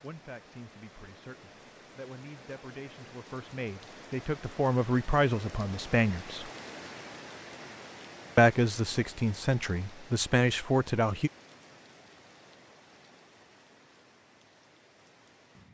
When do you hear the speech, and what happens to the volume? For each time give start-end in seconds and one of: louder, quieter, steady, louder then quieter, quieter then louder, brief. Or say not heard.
0.0-6.5 louder
8.3-11.3 brief.